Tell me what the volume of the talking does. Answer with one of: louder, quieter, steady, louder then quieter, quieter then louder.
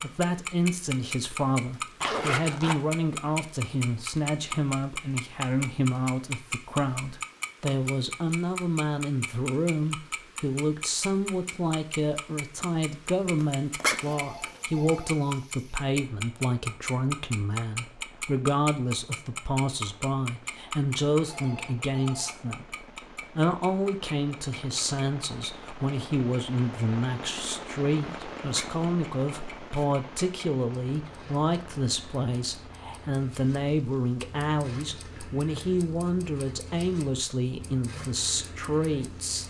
steady.